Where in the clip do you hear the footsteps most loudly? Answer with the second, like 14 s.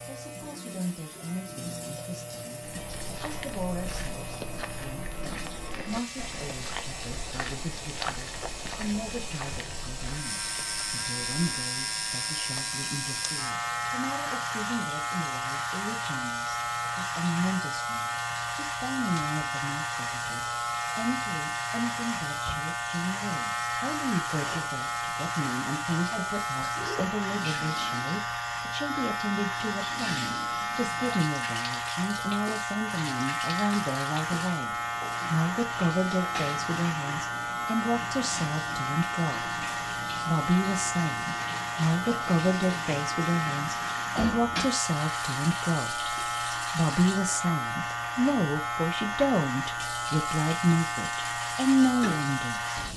8 s.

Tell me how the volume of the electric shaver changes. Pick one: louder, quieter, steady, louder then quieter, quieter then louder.
louder.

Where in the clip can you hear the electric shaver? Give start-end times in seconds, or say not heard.
0.0-52.9.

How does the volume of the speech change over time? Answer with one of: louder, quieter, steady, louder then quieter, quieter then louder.
louder.